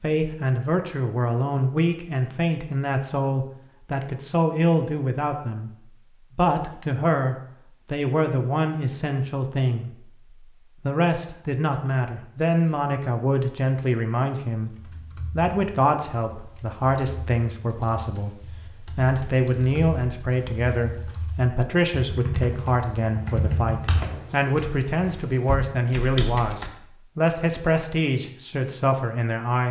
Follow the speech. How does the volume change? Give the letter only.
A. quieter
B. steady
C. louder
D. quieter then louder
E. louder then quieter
B.